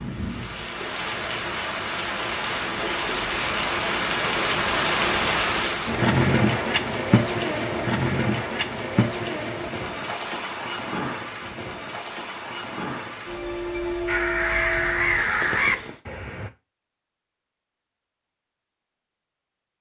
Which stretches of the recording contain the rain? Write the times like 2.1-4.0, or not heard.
0.0-16.0.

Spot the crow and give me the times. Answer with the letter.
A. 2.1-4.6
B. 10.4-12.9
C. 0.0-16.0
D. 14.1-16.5
D.